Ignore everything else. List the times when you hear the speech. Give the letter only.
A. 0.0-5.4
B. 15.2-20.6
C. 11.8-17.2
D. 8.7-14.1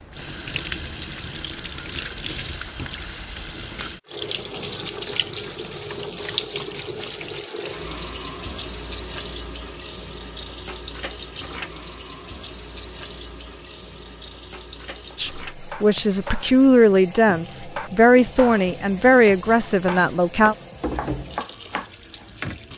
B.